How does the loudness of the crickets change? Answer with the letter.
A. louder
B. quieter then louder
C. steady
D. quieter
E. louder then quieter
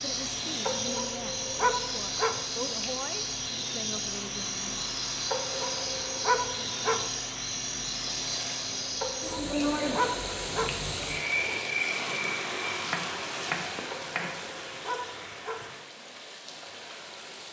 C.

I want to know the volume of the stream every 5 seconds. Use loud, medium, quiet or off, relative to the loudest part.
medium, medium, loud, medium.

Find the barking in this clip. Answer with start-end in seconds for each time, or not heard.
0.7-2.5, 5.3-7.1, 9.0-10.8, 13.9-15.7.